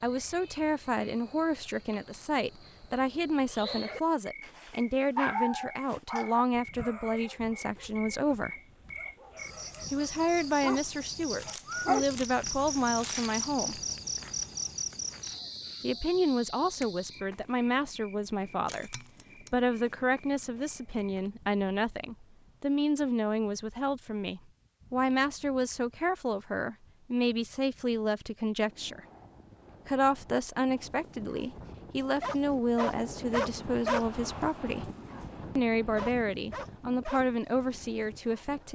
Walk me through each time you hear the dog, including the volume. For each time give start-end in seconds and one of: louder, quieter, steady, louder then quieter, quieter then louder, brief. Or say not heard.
3.5-12.6 quieter then louder
31.2-34.0 brief
35.0-37.2 brief
38.2-38.7 brief.